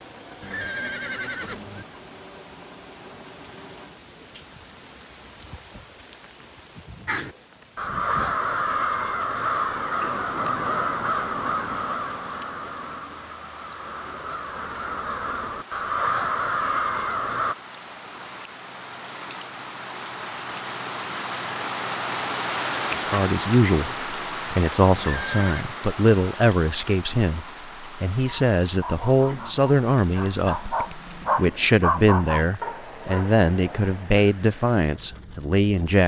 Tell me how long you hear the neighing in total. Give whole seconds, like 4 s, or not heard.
2 s.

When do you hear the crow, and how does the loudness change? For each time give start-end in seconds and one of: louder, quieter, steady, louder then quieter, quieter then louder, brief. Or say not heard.
7.0-17.6 quieter then louder.